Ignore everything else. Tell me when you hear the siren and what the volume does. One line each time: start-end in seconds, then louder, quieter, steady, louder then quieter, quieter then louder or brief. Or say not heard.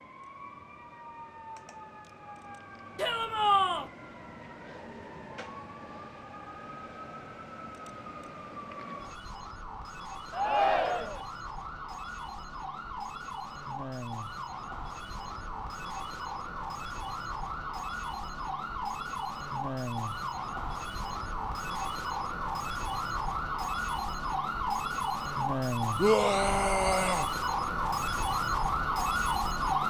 0.0-29.8 louder.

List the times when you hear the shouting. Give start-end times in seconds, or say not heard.
3.0-3.9, 10.3-11.2, 25.9-27.2.